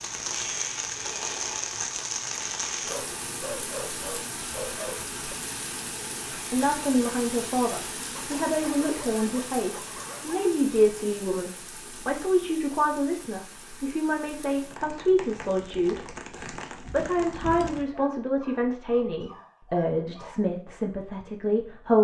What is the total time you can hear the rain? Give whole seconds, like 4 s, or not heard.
18 s.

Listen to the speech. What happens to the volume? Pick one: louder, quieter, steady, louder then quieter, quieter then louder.
steady.